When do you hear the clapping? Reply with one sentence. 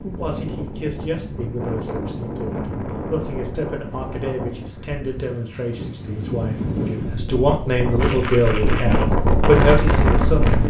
The clapping can't be heard in this clip.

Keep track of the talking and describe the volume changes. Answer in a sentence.
The volume of the talking goes up.